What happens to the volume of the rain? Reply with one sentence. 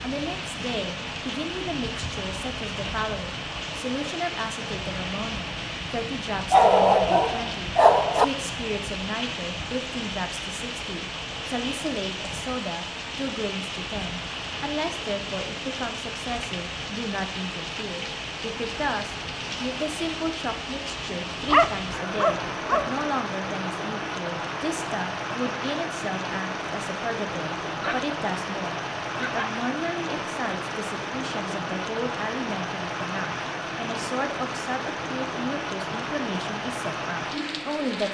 The volume of the rain stays about the same.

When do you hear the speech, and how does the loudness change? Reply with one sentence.
You can hear the speech from 0.0 to 38.0 s, at a steady volume.